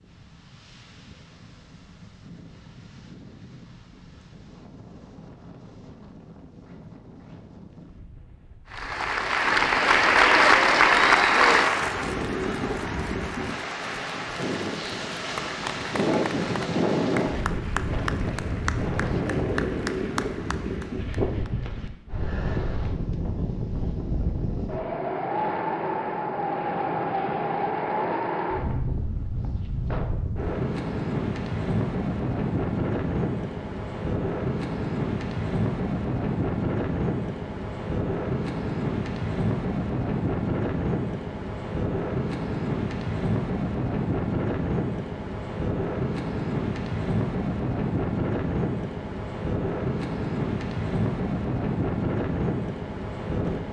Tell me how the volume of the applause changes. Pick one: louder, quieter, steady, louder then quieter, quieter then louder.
quieter.